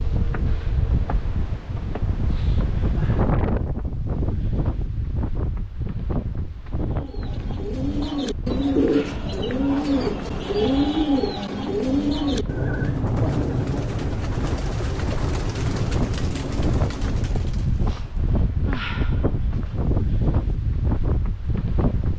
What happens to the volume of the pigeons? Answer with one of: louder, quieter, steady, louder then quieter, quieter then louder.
quieter.